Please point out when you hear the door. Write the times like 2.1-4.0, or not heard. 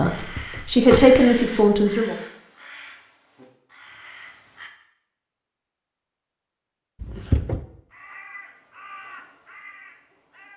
0.3-1.1, 7.0-7.7.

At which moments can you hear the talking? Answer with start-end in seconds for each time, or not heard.
0.0-2.1.